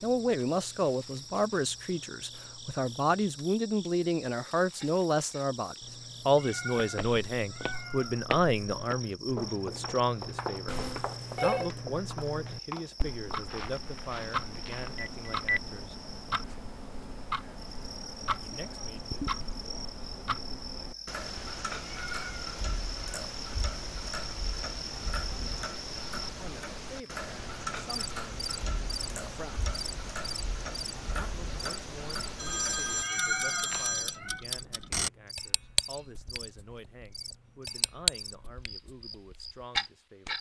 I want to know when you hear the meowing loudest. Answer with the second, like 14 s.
33 s.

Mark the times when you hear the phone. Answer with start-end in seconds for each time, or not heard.
10.7-11.7, 14.9-15.6, 32.4-34.1.